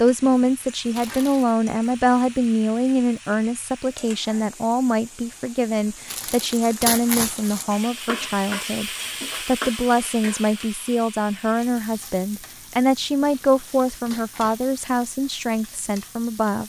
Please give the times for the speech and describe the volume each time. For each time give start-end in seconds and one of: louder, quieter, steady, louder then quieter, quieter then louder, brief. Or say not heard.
0.0-16.6 steady.